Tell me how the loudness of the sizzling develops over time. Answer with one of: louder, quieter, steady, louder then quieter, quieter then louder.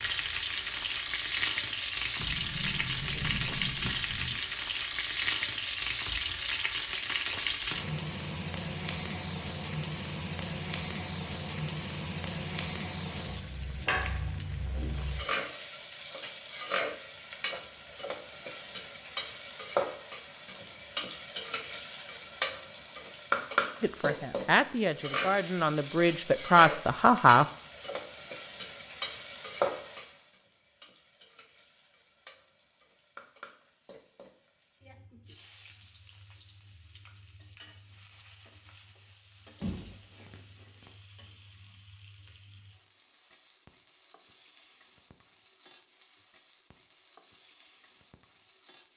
quieter.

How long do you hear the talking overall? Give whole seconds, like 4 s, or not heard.
4 s.